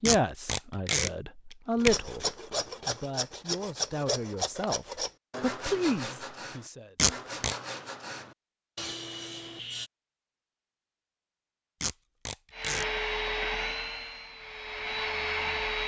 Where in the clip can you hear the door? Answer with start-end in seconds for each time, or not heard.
not heard.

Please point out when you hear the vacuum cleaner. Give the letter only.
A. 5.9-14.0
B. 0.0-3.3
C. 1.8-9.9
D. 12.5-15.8
D.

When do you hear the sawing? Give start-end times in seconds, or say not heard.
1.8-9.9.